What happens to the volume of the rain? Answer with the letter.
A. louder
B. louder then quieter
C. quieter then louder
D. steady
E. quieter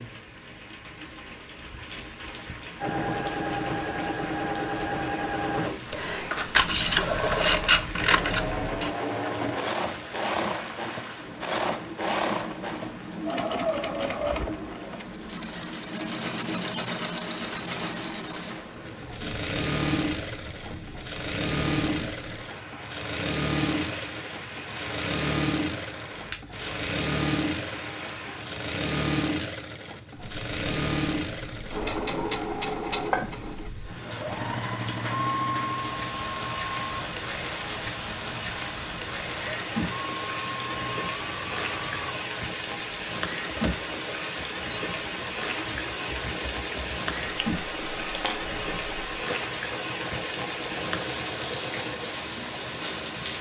A.